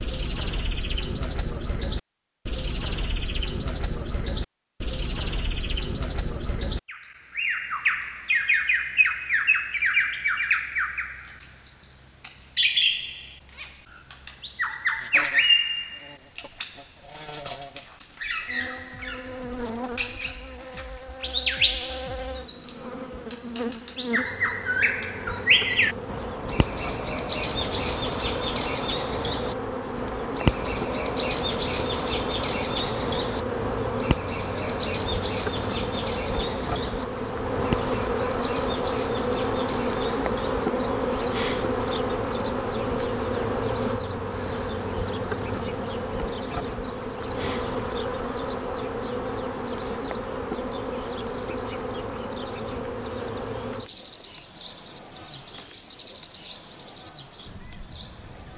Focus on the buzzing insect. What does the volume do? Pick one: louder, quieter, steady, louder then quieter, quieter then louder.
louder then quieter.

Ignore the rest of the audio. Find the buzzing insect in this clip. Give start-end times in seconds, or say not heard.
15.0-58.5.